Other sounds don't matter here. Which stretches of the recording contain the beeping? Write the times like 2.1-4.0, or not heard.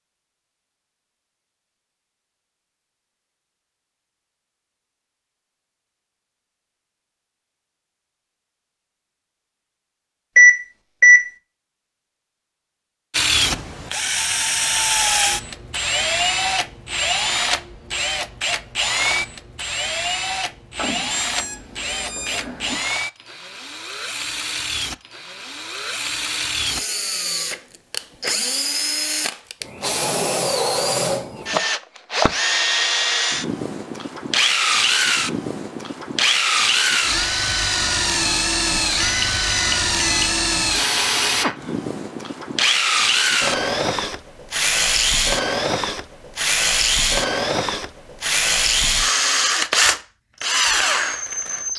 10.3-11.3, 20.8-22.8, 38.8-40.4.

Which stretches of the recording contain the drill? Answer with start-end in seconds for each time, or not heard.
13.1-51.7.